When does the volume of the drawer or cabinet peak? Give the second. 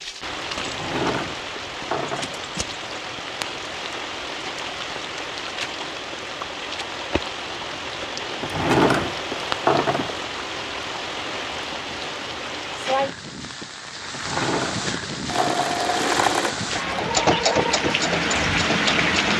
9 s.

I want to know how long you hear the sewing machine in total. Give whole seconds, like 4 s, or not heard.
4 s.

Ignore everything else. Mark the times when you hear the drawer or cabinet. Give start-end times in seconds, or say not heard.
0.7-2.5, 8.4-10.2, 14.1-15.9.